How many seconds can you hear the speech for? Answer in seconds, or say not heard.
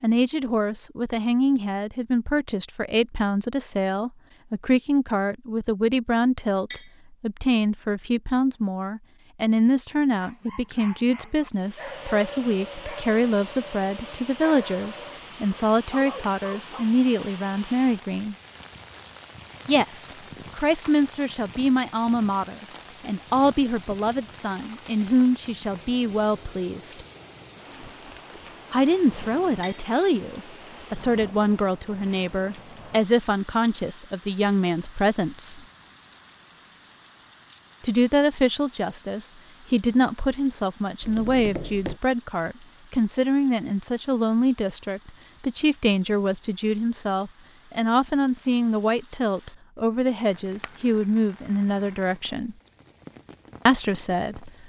48 s.